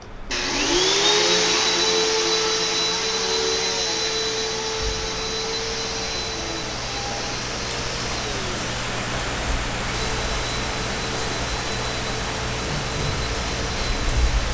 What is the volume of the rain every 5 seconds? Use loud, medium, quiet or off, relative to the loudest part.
quiet, loud, loud.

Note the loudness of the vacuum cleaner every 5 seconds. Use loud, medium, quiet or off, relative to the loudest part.
loud, medium, quiet.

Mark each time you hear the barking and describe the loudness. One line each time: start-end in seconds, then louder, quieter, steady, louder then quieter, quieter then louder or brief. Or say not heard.
not heard.